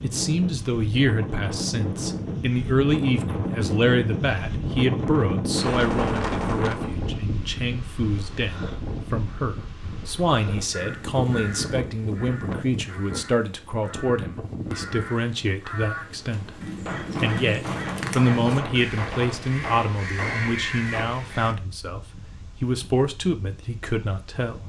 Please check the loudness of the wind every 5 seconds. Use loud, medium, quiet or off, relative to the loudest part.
loud, loud, medium, quiet, quiet.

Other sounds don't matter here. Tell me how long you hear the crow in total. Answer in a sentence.
You can hear the crow for 11 seconds altogether.